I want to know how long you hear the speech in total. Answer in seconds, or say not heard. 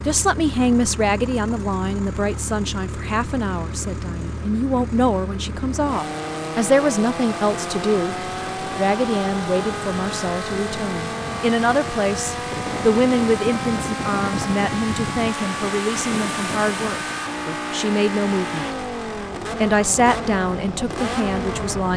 21 s.